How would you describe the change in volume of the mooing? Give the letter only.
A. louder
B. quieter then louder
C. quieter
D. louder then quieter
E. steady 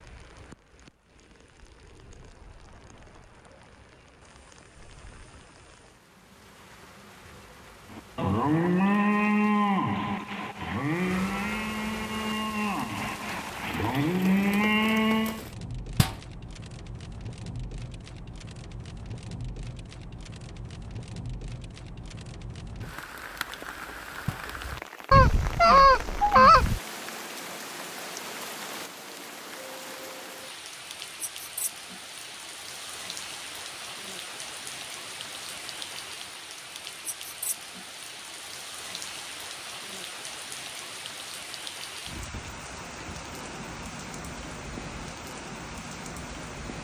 B.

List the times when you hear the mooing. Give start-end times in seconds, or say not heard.
7.9-15.4.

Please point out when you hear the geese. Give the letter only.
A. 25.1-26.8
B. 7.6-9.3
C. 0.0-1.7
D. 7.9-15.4
A.